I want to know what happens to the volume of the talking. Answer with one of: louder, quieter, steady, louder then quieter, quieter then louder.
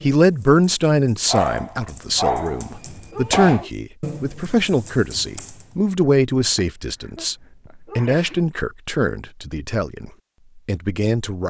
quieter.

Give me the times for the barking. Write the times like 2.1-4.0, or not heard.
1.2-3.6, 6.5-8.2.